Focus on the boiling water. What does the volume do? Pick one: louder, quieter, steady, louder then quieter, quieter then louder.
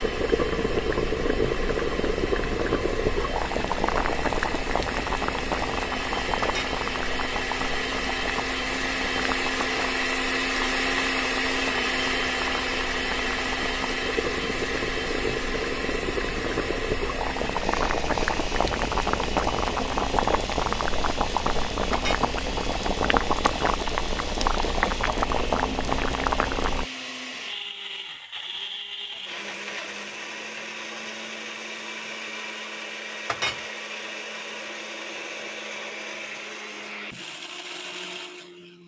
quieter then louder.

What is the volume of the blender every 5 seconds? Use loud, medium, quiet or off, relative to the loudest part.
medium, loud, loud, medium, medium, medium, medium, medium.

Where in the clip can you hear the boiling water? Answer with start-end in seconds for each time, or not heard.
0.0-26.9.